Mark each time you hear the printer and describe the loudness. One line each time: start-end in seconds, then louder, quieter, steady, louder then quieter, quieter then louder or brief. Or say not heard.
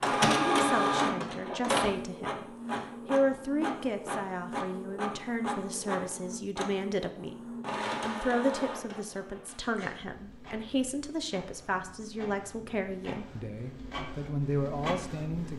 0.0-15.5 quieter then louder.